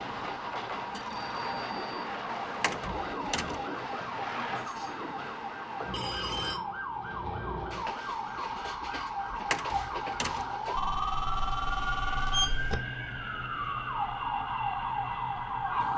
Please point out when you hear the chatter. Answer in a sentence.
The chatter can't be heard in this clip.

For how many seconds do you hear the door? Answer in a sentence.
You can hear the door for 2 seconds altogether.